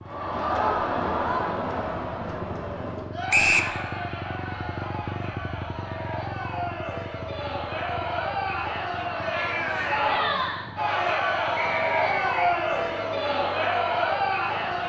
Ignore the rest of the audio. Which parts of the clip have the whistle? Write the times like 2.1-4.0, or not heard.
3.3-3.7, 11.6-12.6.